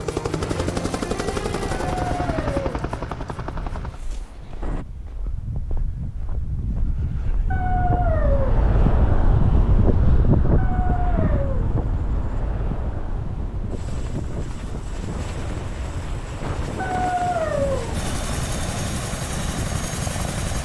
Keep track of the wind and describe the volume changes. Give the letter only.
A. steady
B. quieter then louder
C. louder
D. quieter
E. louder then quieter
E.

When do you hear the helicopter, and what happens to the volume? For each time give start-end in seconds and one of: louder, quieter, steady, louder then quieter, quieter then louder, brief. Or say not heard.
0.0-4.8 quieter
10.7-20.6 louder.